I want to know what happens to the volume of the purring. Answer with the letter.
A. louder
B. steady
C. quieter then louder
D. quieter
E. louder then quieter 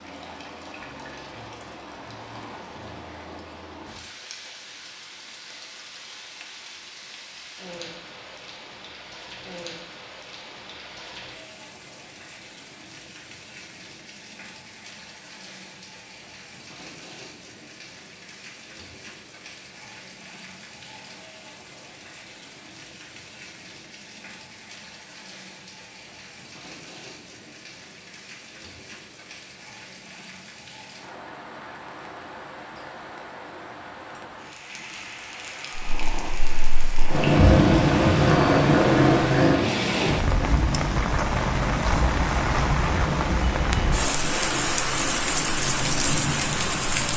D.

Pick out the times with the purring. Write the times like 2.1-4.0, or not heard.
35.8-47.1.